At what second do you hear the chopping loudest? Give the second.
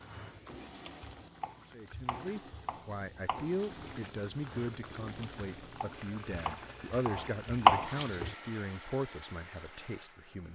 8 s.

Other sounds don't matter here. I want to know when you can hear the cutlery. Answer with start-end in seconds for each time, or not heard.
not heard.